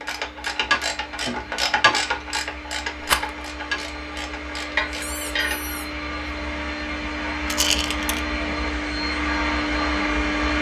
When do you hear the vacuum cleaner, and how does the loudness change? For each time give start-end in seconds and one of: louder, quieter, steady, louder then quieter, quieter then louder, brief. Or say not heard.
0.0-10.5 louder.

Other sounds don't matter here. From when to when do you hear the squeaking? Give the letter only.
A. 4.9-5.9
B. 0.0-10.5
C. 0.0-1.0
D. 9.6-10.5
A.